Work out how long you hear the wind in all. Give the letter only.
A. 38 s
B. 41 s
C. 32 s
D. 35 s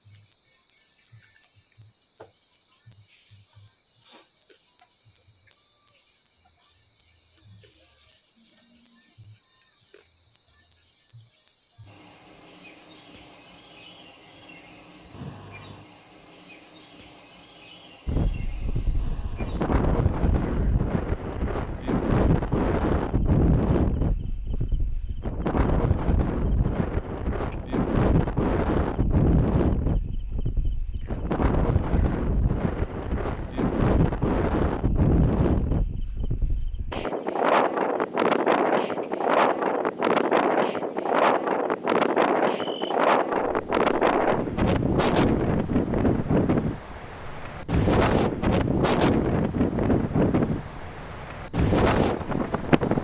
D.